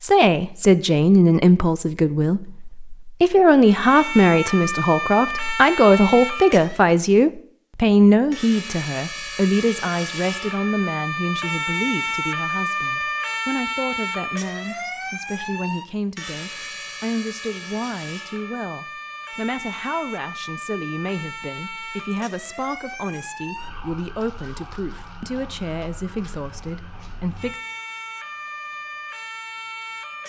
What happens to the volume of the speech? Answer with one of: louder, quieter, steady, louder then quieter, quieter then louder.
quieter.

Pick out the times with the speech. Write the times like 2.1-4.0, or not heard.
0.0-27.6.